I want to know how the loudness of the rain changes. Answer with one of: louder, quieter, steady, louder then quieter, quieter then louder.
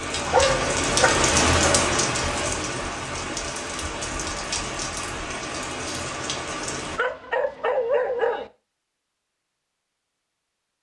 quieter.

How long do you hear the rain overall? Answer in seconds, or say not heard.
7 s.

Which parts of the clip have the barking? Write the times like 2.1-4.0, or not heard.
0.2-1.9, 7.0-8.5.